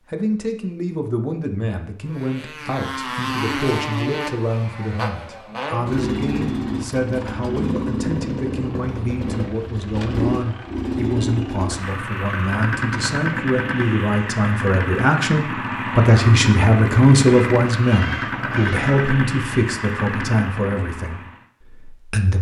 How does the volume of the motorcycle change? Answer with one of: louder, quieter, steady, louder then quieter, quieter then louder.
steady.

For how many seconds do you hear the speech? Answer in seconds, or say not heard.
22 s.